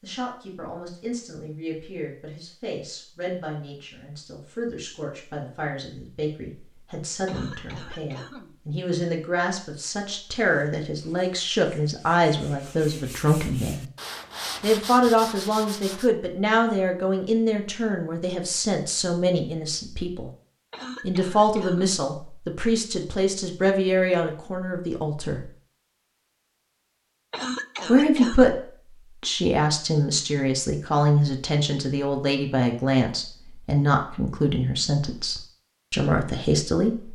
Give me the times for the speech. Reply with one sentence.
You can hear the speech from 0.0 to 13.8 s, from 14.6 to 20.3 s, from 21.0 to 25.5 s, from 27.9 to 28.6 s and from 29.2 to 37.0 s.